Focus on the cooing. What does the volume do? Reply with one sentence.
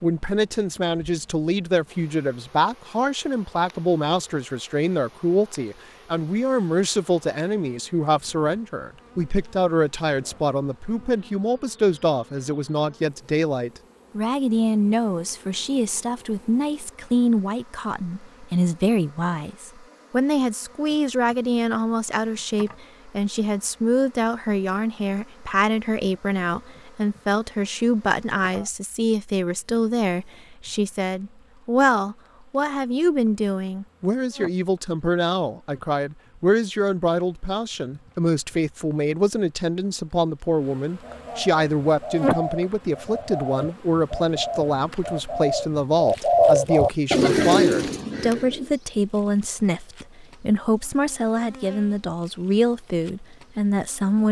The volume of the cooing goes up.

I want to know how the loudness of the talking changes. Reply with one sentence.
The loudness of the talking stays about the same.